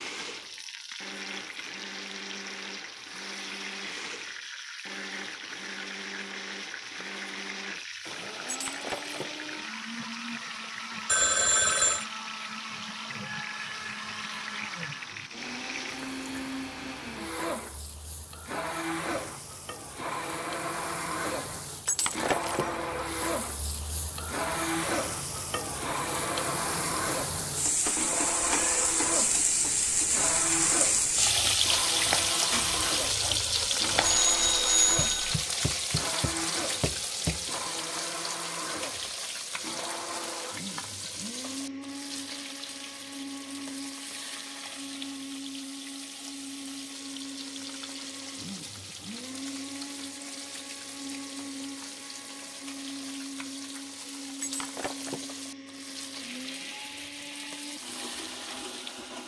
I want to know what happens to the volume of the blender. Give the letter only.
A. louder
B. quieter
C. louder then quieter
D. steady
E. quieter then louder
C.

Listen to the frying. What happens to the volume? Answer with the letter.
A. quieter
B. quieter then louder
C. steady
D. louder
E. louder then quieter
E.